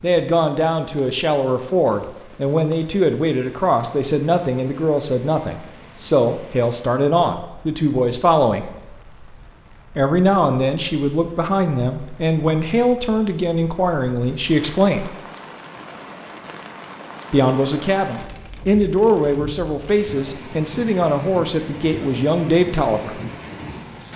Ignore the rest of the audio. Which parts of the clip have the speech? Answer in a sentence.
The speech can be heard from 0.0 to 8.7 s, from 9.9 to 15.1 s and from 17.3 to 23.2 s.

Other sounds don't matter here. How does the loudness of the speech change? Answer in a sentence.
The volume of the speech stays about the same.